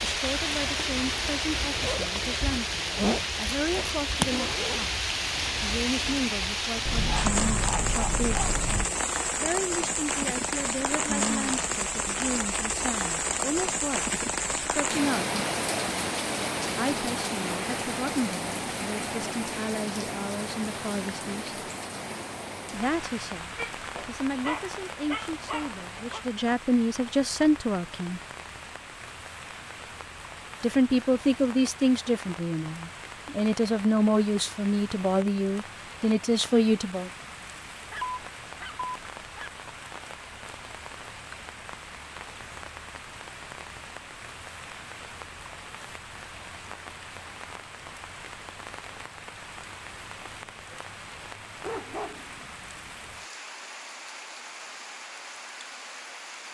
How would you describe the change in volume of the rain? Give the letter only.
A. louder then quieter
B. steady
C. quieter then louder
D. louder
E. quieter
E.